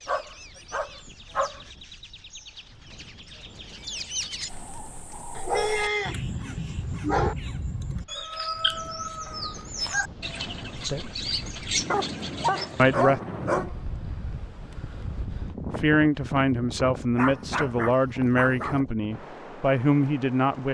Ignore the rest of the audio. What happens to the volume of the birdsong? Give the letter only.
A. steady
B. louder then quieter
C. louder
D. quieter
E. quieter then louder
C.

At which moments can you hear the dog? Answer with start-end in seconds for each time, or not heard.
0.1-1.6, 5.3-6.2, 6.9-7.3, 11.9-13.8, 17.1-18.8.